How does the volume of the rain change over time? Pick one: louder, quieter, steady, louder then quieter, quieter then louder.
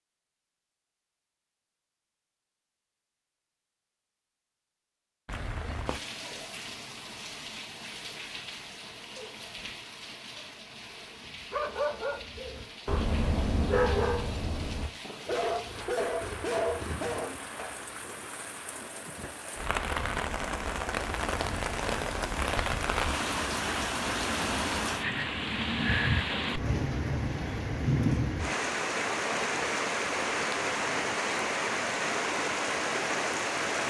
louder.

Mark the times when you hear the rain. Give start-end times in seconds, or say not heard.
5.2-33.8.